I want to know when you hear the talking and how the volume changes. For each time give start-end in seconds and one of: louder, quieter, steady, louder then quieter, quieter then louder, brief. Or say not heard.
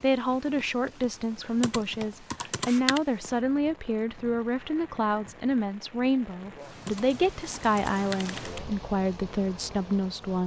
0.0-10.4 steady.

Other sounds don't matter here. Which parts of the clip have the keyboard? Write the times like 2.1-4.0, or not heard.
1.4-3.0, 6.7-8.7.